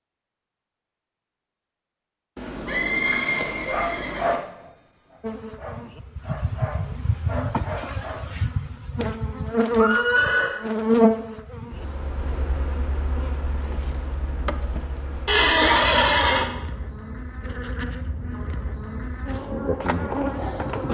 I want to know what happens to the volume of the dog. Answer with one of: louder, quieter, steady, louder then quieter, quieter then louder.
quieter then louder.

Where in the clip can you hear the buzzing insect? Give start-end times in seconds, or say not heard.
5.2-20.8.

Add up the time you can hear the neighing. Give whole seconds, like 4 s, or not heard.
4 s.